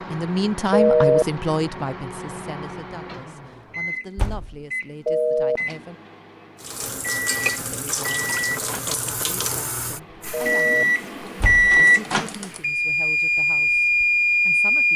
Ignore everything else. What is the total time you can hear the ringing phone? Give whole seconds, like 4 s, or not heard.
2 s.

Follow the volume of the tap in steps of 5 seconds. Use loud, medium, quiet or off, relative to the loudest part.
off, loud, medium.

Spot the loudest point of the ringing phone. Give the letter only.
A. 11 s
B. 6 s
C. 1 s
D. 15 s
C.